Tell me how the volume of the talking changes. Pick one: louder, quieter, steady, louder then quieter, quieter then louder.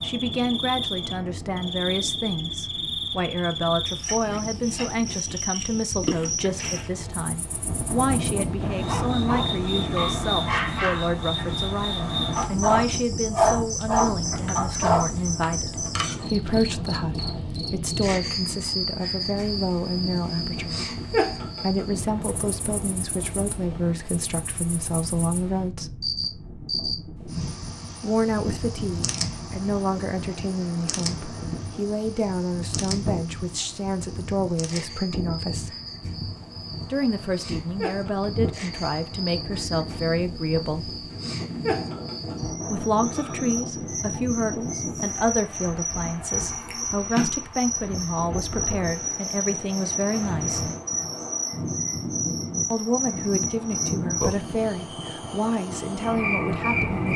steady.